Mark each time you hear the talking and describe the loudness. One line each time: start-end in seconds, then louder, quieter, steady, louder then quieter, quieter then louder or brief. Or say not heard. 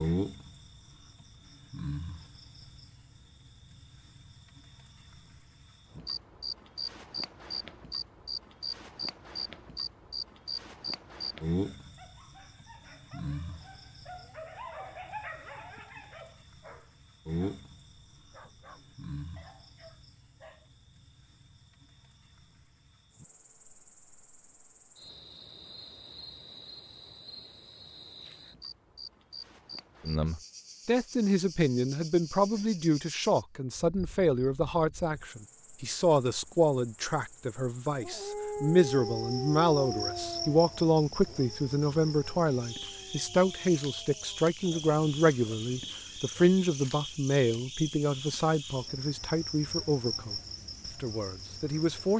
30.1-50.4 steady
51.0-52.1 brief.